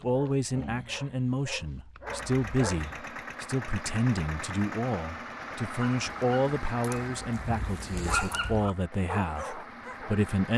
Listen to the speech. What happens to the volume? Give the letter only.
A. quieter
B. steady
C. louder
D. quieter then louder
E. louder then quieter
B.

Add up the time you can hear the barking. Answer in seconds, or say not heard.
7 s.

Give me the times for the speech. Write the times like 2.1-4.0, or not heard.
0.0-10.5.